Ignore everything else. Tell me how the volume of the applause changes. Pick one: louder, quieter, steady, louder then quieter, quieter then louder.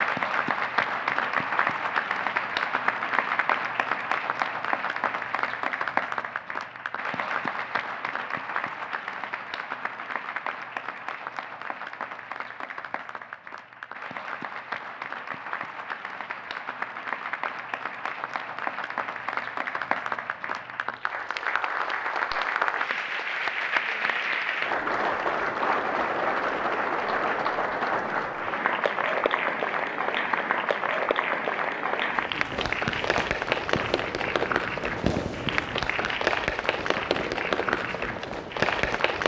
quieter then louder.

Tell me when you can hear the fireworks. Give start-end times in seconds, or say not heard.
32.0-39.0.